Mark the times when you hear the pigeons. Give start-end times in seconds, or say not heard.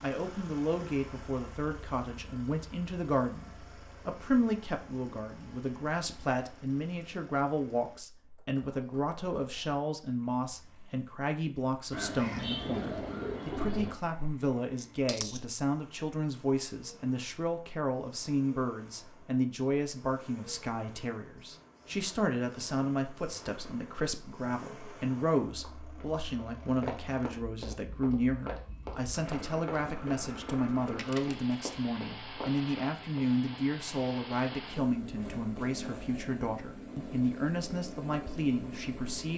11.9-13.9.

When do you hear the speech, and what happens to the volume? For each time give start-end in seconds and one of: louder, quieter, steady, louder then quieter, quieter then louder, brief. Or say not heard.
0.0-39.3 steady.